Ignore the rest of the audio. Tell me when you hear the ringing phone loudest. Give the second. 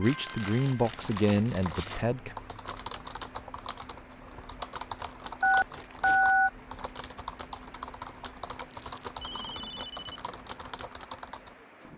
6 s.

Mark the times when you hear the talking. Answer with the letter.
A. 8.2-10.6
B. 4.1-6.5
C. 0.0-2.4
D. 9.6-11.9
C.